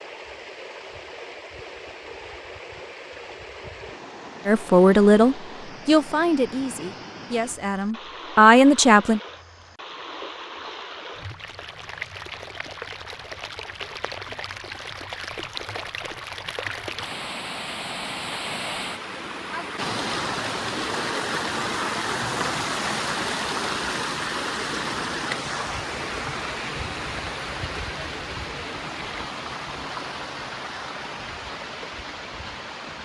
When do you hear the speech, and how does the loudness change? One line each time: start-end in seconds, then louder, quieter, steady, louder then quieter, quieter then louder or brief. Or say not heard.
4.5-9.2 quieter then louder.